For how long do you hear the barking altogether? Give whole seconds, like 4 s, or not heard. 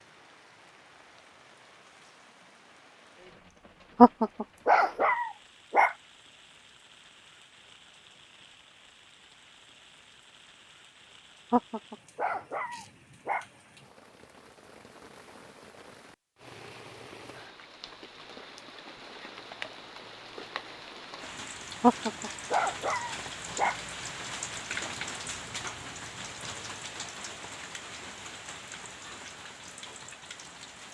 6 s.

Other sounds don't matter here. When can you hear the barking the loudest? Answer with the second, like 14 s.
4 s.